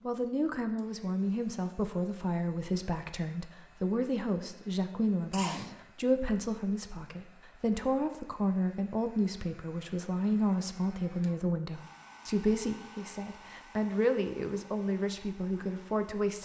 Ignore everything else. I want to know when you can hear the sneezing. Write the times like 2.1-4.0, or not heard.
5.3-5.8.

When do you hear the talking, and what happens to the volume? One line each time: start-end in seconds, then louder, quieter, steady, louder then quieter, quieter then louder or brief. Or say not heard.
0.0-16.4 steady.